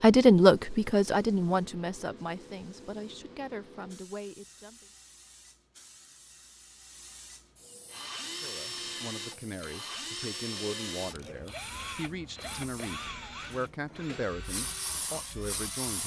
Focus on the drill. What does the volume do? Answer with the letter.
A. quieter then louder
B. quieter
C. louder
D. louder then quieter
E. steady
B.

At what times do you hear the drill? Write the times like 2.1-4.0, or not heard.
7.8-15.9.